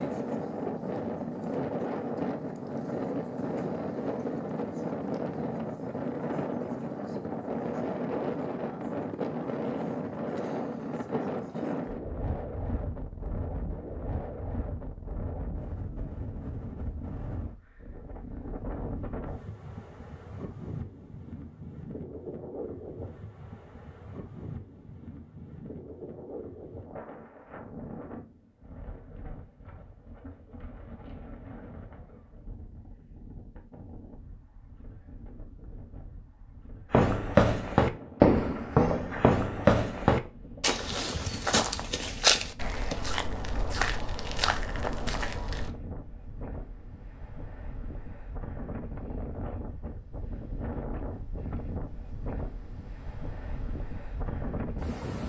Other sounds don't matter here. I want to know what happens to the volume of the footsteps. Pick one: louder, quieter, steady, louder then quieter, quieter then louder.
quieter.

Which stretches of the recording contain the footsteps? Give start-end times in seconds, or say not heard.
36.9-45.7.